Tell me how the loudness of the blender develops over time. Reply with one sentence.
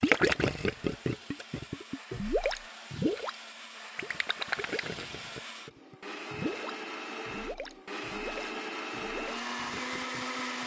The loudness of the blender goes up.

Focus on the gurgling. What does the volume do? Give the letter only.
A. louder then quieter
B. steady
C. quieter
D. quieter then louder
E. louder
C.